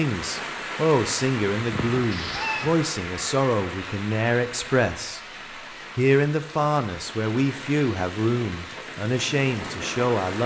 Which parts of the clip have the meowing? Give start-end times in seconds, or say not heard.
1.7-2.8.